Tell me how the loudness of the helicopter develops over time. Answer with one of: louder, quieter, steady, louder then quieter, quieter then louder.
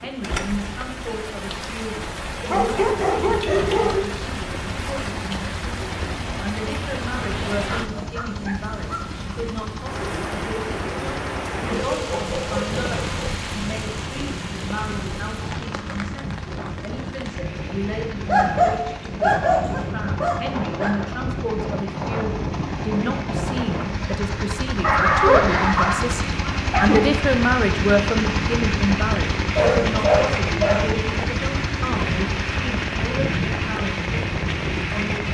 louder.